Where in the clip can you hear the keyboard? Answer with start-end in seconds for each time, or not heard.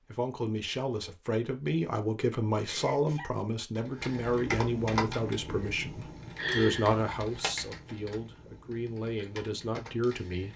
3.8-10.5.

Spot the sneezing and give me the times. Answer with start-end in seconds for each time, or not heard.
2.6-3.3, 6.3-6.9.